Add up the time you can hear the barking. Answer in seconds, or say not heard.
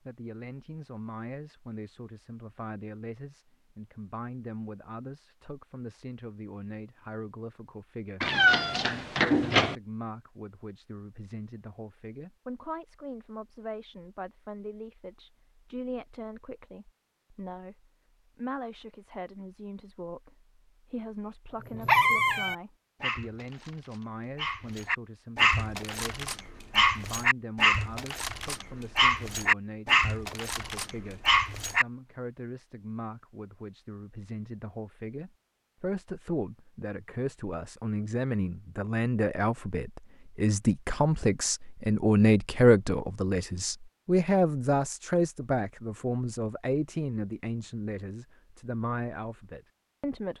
10 s.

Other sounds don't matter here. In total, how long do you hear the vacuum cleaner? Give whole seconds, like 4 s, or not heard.
not heard.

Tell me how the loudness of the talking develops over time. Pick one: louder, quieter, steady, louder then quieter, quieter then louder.
louder.